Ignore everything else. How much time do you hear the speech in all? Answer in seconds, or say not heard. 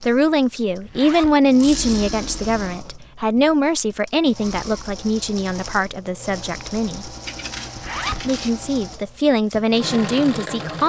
10 s.